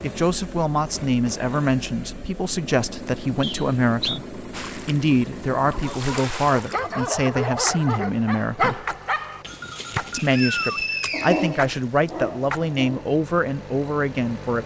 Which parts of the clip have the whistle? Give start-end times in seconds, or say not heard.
3.4-4.2, 10.2-12.1.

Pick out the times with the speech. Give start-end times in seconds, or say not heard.
0.0-8.8, 10.1-14.6.